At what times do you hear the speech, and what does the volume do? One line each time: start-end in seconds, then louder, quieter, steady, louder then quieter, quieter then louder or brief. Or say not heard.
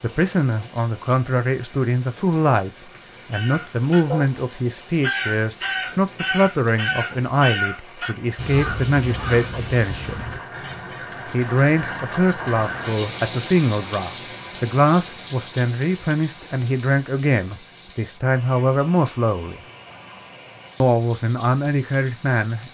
0.0-2.7 brief
3.3-10.3 steady
11.3-19.6 steady
20.8-22.6 brief.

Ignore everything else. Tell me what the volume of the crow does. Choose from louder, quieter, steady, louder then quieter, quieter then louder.
quieter.